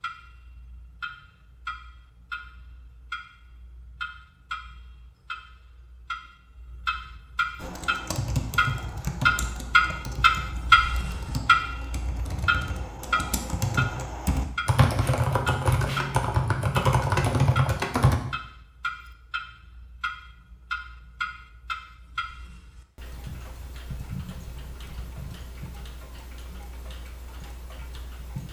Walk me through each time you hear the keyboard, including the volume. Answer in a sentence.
You can hear the keyboard from 7.6 to 18.2 s, getting quieter then louder.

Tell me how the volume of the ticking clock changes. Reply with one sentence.
The volume of the ticking clock goes up, then down.